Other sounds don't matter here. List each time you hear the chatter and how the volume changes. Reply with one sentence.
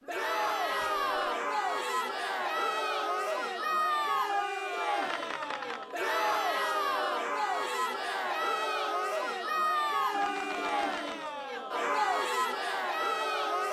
The chatter can be heard from 0.1 to 13.6 s, at a steady volume.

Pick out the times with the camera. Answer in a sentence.
The camera can be heard from 0.7 to 1.4 s, from 5.0 to 6.0 s and from 10.1 to 11.3 s.